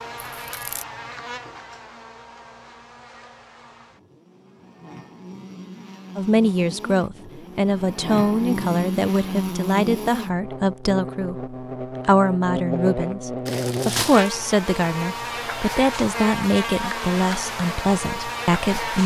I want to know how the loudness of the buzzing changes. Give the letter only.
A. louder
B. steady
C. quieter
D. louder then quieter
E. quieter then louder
A.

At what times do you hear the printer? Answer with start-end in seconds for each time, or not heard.
not heard.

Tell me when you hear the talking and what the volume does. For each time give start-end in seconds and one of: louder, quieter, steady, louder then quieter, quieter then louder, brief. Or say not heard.
6.2-19.0 steady.